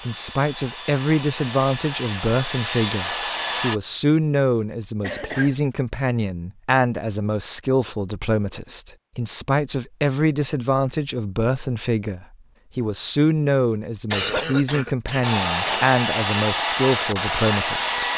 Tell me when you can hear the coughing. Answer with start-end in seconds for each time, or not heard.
5.0-5.5, 14.1-15.9.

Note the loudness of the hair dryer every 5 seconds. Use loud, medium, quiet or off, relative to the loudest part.
medium, off, off, loud.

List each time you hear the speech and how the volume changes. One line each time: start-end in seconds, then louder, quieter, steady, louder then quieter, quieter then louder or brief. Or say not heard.
0.1-18.1 steady.